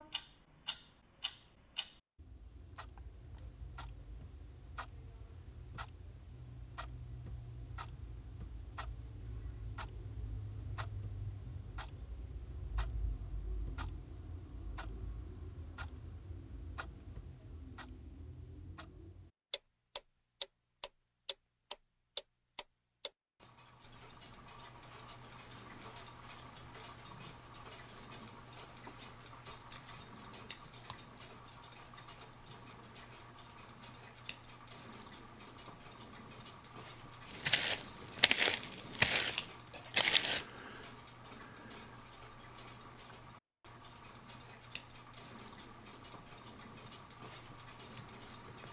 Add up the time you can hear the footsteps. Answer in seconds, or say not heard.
3 s.